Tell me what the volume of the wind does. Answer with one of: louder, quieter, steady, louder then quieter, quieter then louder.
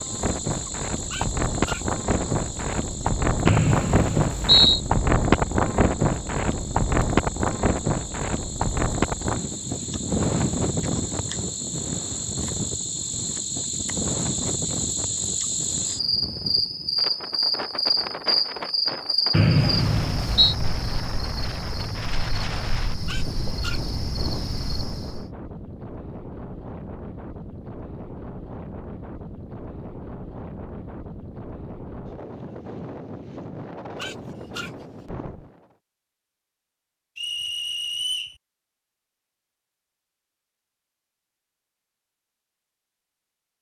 quieter.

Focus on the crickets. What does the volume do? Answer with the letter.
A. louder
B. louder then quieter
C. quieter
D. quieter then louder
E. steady
B.